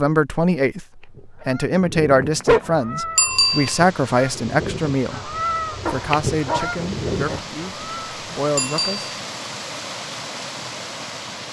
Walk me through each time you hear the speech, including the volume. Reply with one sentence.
The speech can be heard from 0.0 to 9.1 s, getting quieter.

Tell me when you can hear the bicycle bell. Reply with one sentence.
The bicycle bell can be heard from 3.1 to 3.8 s and from 8.6 to 9.1 s.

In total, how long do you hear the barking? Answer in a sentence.
The barking can be heard for 2 seconds in total.